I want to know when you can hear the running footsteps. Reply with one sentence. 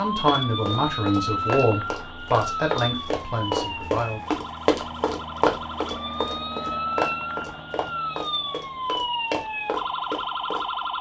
You can hear the running footsteps from 0.1 to 10.7 s.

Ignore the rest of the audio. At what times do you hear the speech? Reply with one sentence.
The speech can be heard from 0.0 to 4.2 s.